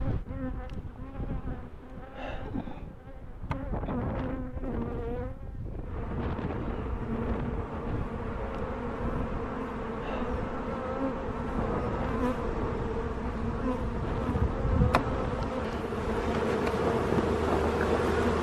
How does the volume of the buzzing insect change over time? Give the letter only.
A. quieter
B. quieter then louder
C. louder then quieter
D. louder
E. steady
D.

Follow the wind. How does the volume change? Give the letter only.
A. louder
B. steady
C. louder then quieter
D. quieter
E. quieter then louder
A.